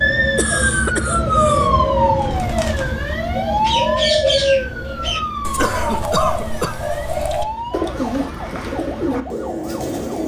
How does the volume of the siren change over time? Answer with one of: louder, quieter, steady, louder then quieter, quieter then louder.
quieter.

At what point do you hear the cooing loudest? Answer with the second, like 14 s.
4 s.